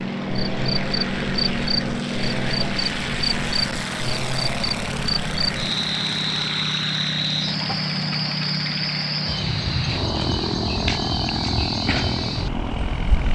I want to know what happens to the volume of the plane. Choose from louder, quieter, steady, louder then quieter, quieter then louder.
steady.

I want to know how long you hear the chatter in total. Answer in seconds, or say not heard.
not heard.